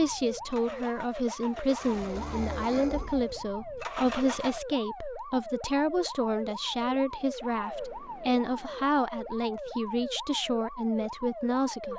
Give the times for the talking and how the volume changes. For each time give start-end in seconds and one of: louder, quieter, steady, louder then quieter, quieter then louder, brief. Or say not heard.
0.0-11.9 steady.